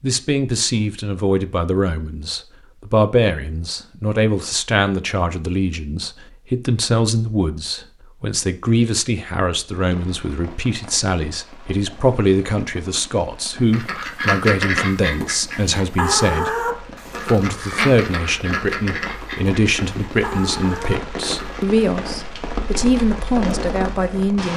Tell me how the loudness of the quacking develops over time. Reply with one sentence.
The volume of the quacking goes down.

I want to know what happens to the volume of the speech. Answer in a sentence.
The loudness of the speech stays about the same.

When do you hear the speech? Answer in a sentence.
The speech can be heard from 0.0 to 24.5 s.